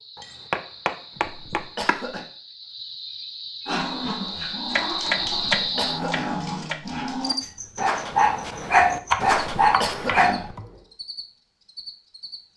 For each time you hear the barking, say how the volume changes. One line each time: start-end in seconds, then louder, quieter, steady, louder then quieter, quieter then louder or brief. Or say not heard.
3.6-10.3 louder.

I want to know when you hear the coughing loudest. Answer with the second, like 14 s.
10 s.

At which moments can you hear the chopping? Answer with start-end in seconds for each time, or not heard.
0.1-2.0, 4.7-6.8, 8.9-10.7.